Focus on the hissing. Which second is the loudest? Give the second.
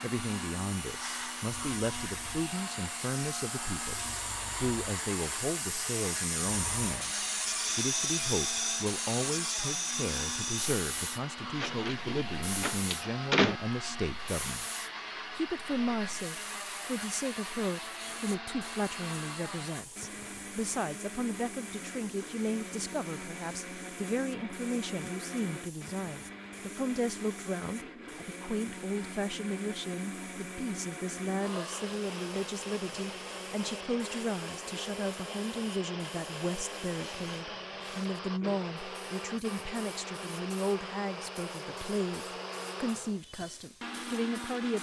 8 s.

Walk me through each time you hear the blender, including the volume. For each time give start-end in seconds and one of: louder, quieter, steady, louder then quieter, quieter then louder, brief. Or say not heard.
0.0-44.7 steady.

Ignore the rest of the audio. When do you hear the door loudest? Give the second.
13 s.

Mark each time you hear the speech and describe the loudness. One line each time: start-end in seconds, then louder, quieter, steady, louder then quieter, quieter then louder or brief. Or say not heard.
0.0-44.7 steady.